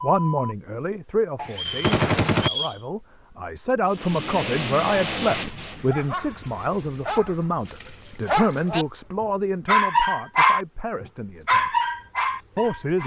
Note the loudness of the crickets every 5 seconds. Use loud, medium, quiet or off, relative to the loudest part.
loud, loud, quiet.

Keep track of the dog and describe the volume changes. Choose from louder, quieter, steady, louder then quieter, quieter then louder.
louder.